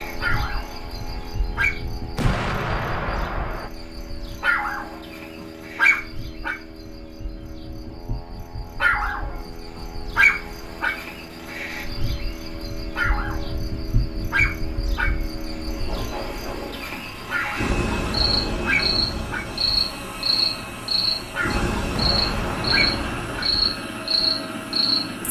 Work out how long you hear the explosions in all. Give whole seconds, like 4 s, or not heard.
3 s.